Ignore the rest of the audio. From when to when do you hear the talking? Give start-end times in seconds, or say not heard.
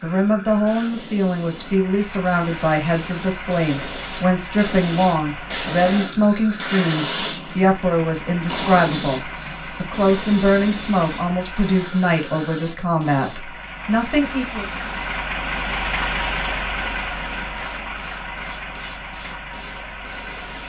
0.0-14.7.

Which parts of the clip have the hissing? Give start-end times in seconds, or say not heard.
0.0-20.6.